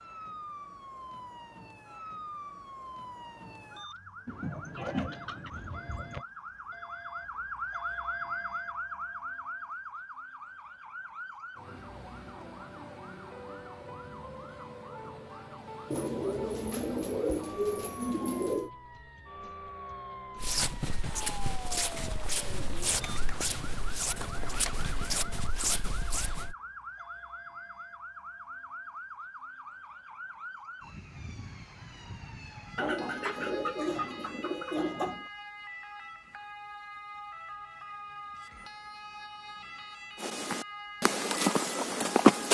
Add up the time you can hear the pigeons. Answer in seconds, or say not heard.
10 s.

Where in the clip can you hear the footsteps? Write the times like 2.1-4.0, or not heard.
20.4-26.6, 40.2-42.5.